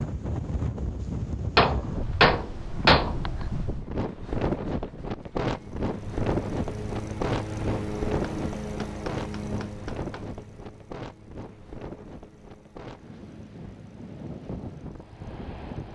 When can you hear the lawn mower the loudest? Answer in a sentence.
The volume of the lawn mower peaks at 8 seconds.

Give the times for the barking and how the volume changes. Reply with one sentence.
The barking can't be heard in this clip.